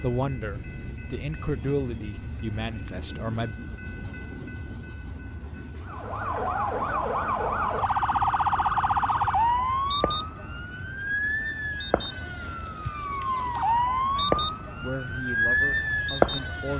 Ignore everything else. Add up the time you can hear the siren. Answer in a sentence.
The siren can be heard for 11 seconds in total.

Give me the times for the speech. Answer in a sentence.
The speech can be heard from 0.0 to 3.6 s and from 14.2 to 16.7 s.